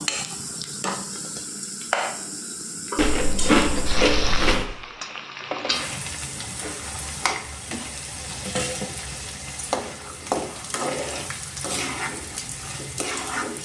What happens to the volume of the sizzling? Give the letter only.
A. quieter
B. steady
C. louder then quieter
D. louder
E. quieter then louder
B.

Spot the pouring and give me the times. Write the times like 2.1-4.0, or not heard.
not heard.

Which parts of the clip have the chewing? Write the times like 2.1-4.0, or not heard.
3.0-4.7.